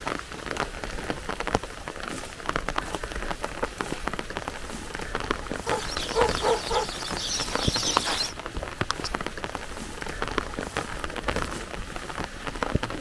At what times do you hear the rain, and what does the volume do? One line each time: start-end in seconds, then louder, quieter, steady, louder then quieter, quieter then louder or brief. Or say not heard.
0.0-12.9 steady.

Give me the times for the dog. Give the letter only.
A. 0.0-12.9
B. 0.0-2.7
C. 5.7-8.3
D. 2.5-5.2
C.